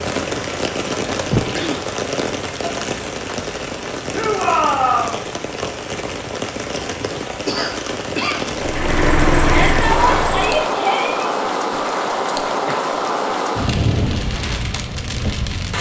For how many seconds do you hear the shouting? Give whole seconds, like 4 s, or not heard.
3 s.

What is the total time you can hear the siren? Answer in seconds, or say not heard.
not heard.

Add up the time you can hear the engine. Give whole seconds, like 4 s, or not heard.
2 s.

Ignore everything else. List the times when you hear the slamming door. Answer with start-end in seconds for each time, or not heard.
not heard.